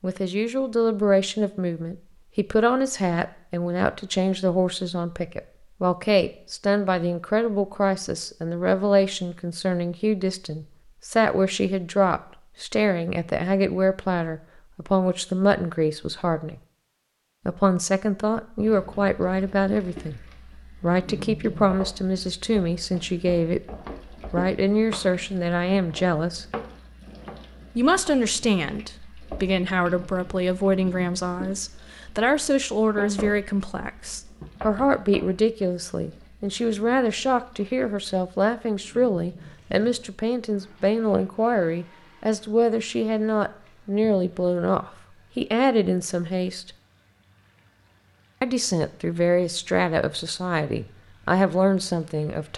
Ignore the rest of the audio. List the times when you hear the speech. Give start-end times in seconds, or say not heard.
0.0-16.6, 17.4-23.6, 24.3-26.4, 27.8-46.7, 48.4-52.5.